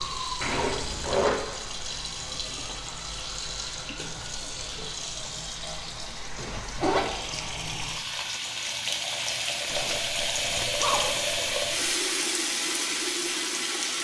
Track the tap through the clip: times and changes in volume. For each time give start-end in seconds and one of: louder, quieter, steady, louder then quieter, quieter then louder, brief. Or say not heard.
0.0-13.9 louder.